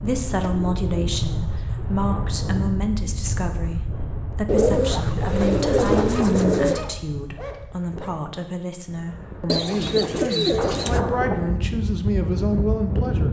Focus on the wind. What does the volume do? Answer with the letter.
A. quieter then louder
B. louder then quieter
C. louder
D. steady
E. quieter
A.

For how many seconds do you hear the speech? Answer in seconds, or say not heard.
13 s.